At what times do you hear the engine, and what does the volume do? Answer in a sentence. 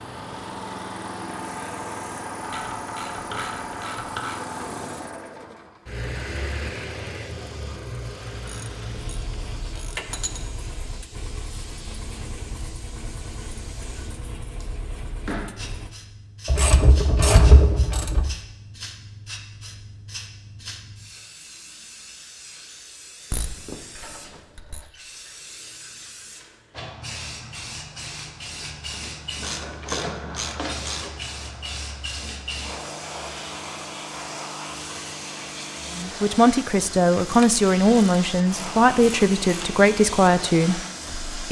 The engine can be heard from 0.0 to 15.9 s, getting quieter.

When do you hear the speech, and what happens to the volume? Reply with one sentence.
The speech can be heard from 36.0 to 41.4 s, at a steady volume.